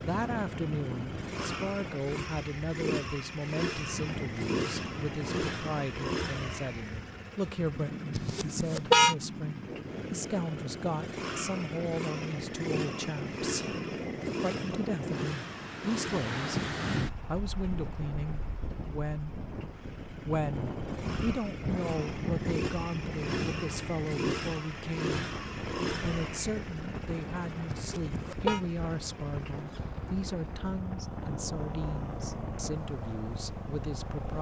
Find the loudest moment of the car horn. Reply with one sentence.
The volume of the car horn peaks at 9 seconds.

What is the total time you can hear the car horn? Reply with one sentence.
The car horn can be heard for 2 seconds in total.